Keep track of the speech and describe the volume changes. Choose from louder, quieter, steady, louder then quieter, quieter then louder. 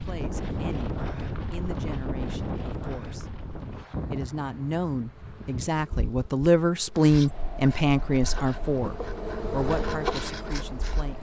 louder then quieter.